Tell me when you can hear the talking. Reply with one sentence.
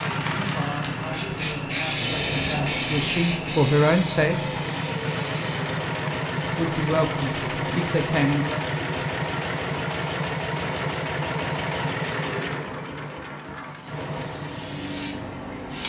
You can hear the talking from 0.0 to 4.4 s and from 6.5 to 8.7 s.